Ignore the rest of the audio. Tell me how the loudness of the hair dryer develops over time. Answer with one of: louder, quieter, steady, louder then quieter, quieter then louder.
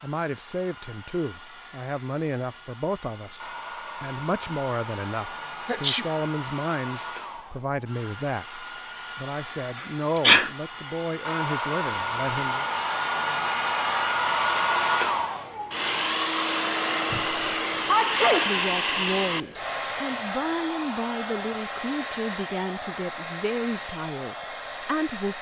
louder then quieter.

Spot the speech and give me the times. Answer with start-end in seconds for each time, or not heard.
0.0-12.7, 18.4-25.3.